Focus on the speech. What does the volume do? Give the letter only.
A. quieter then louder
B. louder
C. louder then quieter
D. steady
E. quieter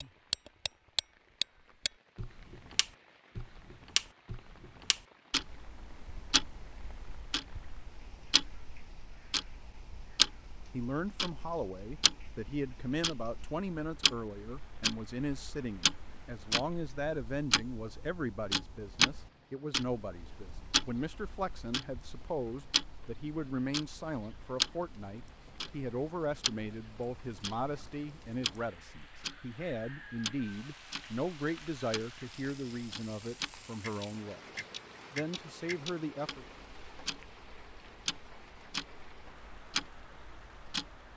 D.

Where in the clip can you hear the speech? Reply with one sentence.
You can hear the speech from 10.7 to 36.5 s.